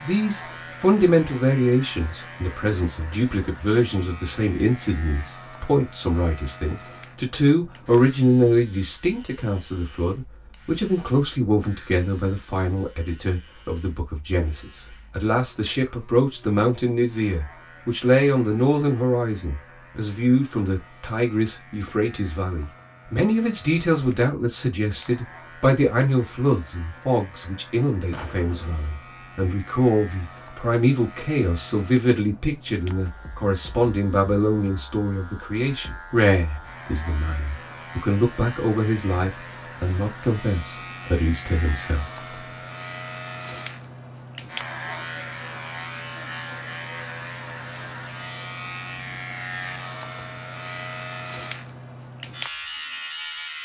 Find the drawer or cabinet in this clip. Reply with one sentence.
The drawer or cabinet can be heard from 28.1 to 28.9 s.